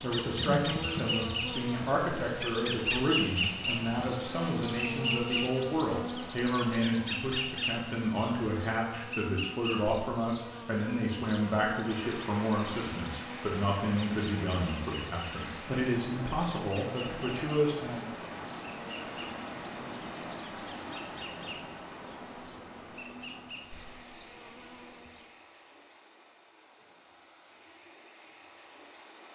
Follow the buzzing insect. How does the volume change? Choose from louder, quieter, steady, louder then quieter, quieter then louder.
quieter.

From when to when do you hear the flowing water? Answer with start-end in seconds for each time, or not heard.
11.8-29.2.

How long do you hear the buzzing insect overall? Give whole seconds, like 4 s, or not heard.
25 s.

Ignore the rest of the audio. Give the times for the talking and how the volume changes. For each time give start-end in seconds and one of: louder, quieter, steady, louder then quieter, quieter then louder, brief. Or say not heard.
0.0-18.1 steady.